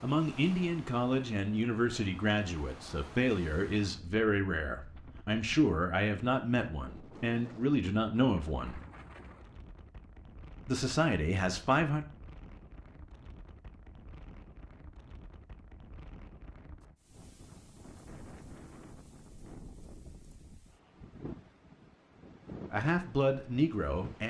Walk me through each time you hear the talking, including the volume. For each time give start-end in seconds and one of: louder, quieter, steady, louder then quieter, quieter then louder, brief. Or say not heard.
0.0-8.8 steady
10.7-12.1 brief
22.7-24.2 brief.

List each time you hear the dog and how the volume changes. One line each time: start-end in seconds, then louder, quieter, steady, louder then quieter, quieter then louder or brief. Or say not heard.
not heard.